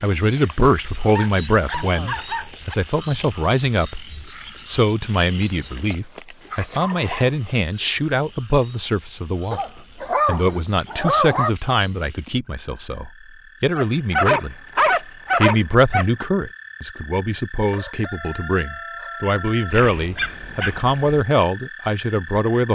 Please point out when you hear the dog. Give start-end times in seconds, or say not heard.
1.1-2.8, 5.2-7.3, 9.5-11.5, 13.8-16.1, 19.7-21.2.